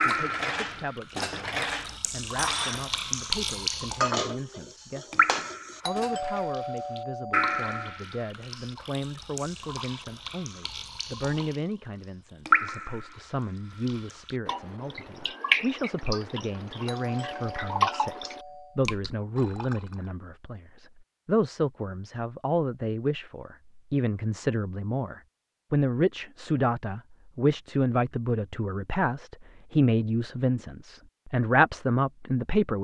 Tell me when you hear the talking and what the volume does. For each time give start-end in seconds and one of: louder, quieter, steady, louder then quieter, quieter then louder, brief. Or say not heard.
0.0-32.7 louder.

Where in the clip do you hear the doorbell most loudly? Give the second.
6 s.